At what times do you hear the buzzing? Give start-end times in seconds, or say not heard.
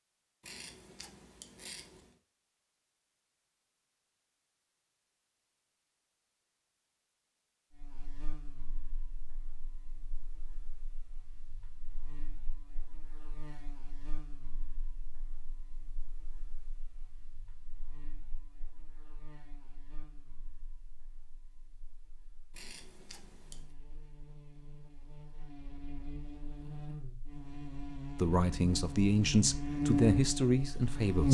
7.8-31.2.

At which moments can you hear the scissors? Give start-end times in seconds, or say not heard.
0.4-2.2, 22.5-23.7.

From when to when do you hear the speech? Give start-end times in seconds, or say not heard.
28.1-31.2.